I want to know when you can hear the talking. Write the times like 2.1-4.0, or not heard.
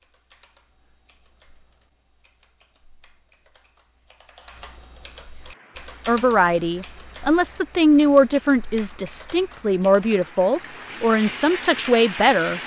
6.0-12.6.